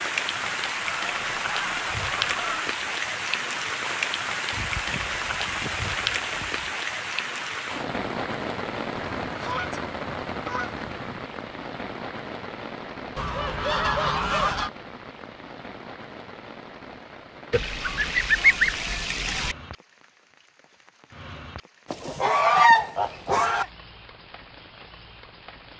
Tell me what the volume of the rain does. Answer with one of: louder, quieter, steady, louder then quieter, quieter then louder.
quieter.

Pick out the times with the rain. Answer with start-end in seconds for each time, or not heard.
0.0-25.7.